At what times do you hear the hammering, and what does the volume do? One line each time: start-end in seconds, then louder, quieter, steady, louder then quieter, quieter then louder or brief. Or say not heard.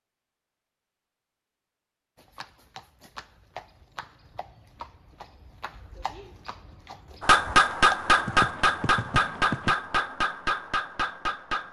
7.2-11.6 quieter.